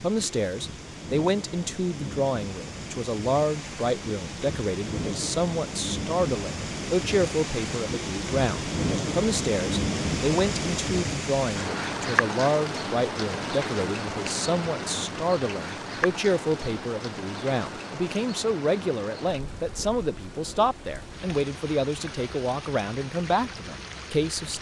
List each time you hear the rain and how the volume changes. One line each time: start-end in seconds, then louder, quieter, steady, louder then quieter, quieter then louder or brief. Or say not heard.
0.0-24.5 louder then quieter.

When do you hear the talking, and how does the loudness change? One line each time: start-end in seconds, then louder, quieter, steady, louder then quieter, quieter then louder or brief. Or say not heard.
0.0-24.5 steady.